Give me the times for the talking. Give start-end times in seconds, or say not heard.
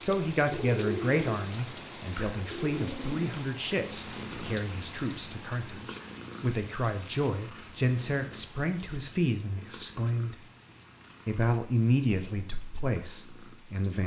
0.0-10.4, 11.2-14.0.